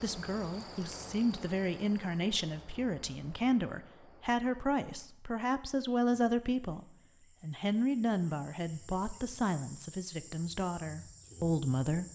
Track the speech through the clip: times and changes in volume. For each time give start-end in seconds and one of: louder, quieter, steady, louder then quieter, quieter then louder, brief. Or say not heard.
0.0-12.1 steady.